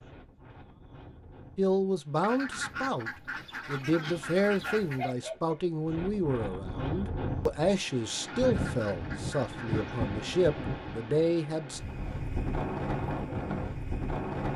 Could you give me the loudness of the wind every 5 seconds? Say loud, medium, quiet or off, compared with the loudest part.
quiet, loud, loud.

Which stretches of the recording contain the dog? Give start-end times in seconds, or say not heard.
3.8-5.6.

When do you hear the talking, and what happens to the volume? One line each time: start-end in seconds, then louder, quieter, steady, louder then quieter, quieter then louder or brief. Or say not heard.
1.6-11.8 steady.